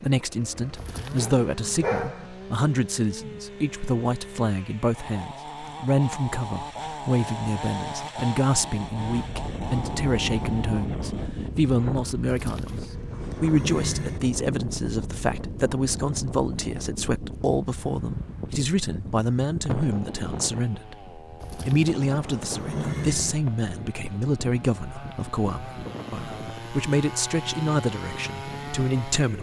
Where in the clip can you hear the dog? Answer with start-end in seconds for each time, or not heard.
1.1-2.3.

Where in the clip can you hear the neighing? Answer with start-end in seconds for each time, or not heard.
0.8-1.9, 12.2-14.2, 21.4-23.4.